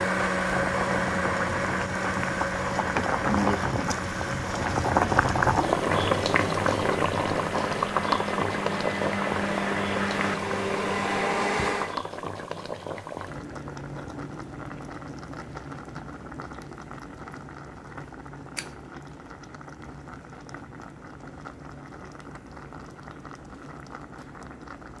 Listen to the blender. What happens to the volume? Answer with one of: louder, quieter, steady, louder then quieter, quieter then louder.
quieter then louder.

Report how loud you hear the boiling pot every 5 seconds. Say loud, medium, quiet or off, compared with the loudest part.
loud, loud, medium, quiet, quiet.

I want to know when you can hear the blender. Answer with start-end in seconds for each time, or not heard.
0.0-11.9.